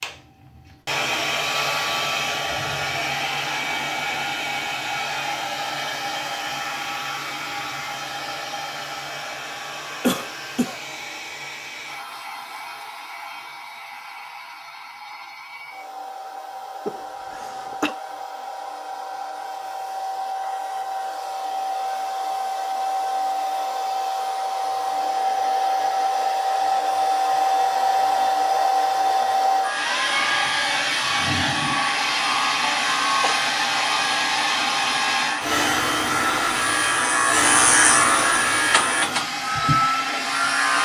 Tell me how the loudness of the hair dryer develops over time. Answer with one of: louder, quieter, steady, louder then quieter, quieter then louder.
quieter then louder.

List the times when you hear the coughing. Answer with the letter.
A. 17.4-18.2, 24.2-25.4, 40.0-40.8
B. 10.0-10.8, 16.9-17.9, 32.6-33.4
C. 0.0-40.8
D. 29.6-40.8
B.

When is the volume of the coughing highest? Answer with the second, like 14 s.
10 s.